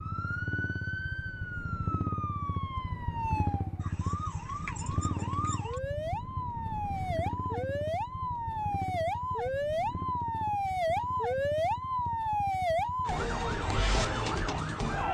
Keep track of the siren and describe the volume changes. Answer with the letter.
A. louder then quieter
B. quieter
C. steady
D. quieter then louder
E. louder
E.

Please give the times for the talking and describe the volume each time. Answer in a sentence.
The talking can't be heard in this clip.